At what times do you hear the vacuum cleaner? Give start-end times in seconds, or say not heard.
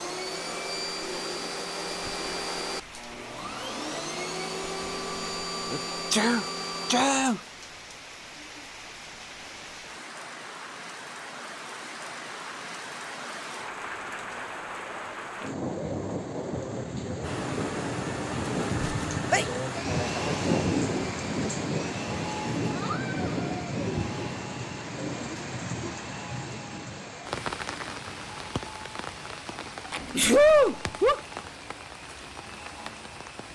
0.0-7.0, 17.2-33.4.